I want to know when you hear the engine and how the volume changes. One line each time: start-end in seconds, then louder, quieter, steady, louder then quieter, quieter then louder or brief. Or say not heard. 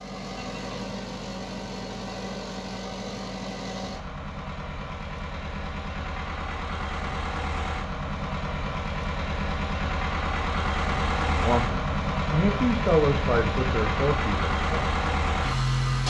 0.0-16.0 louder.